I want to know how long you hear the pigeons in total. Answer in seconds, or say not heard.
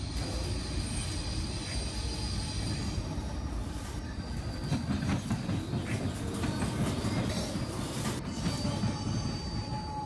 9 s.